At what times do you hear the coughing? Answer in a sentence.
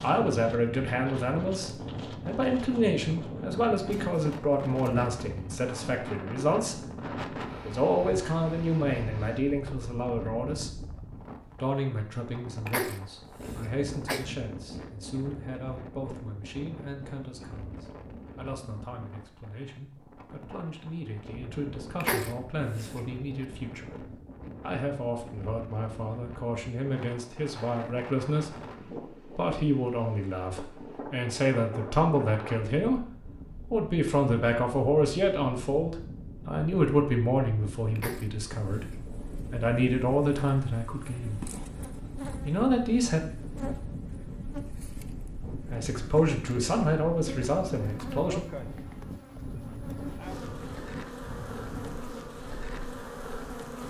You can hear the coughing from 12.7 to 14.2 s, from 22.0 to 23.0 s and from 38.0 to 39.0 s.